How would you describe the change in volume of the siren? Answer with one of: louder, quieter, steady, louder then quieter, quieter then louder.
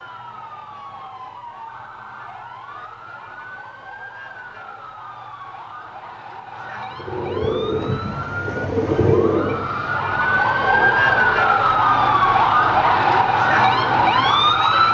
louder.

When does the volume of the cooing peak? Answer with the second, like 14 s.
9 s.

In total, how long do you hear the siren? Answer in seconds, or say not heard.
15 s.